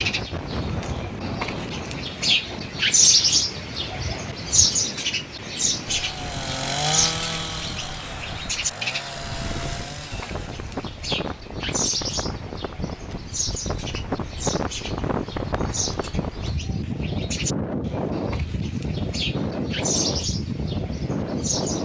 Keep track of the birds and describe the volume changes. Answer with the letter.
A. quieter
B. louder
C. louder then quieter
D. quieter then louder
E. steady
A.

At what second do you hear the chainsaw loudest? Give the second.
7 s.